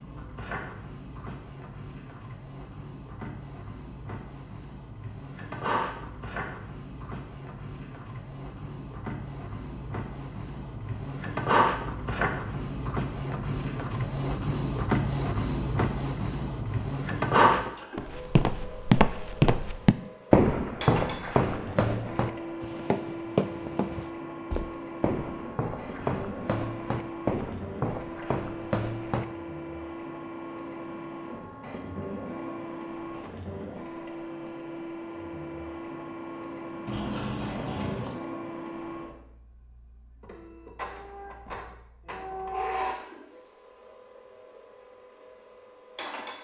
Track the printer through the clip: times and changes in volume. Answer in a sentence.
You can hear the printer from 0.0 to 46.3 s, getting louder then quieter.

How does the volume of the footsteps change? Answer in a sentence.
The loudness of the footsteps goes down.